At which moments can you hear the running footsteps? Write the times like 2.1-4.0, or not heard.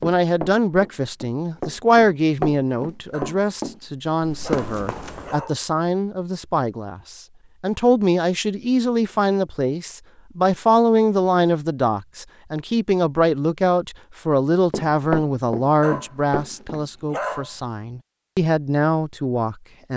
0.0-5.4, 14.7-16.9.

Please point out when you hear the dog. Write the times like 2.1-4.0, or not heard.
3.1-5.6, 15.8-17.6.